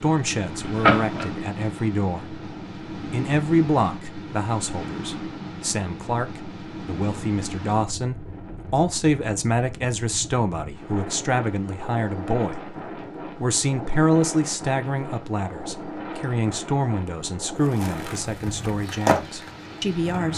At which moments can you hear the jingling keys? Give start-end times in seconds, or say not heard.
0.5-1.2.